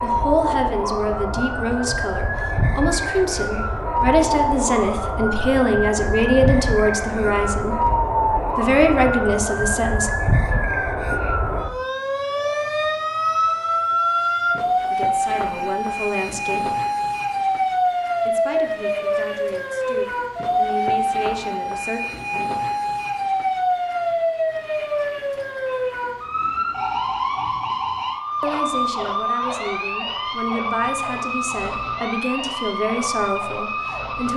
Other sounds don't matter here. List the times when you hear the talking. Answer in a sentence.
You can hear the talking from 0.0 to 7.8 s, from 8.6 to 10.1 s, from 14.9 to 16.6 s, from 18.2 to 22.0 s and from 28.4 to 34.3 s.